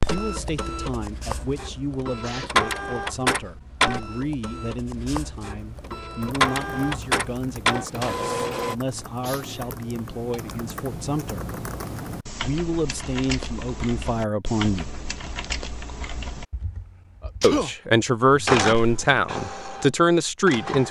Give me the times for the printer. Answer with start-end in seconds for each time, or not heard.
0.0-8.8, 18.3-20.8.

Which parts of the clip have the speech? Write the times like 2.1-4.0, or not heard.
0.0-11.6, 12.4-14.9, 17.4-20.8.